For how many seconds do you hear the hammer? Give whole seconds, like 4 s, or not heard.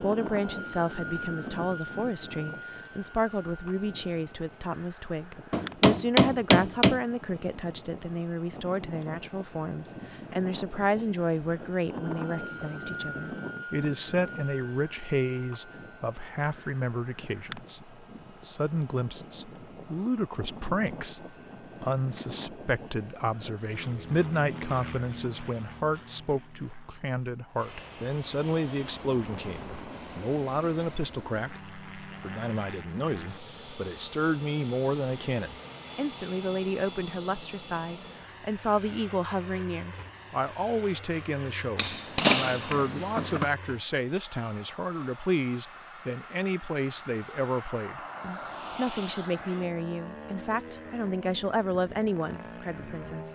3 s.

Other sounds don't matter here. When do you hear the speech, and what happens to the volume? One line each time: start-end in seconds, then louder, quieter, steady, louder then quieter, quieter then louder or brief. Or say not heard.
0.0-53.3 steady.